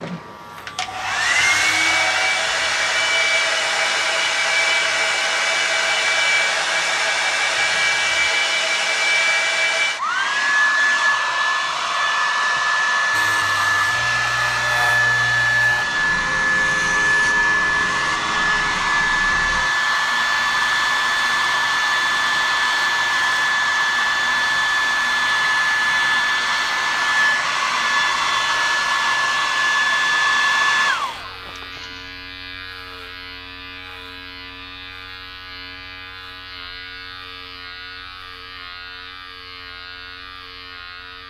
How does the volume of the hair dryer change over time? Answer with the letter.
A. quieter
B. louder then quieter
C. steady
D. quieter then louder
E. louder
C.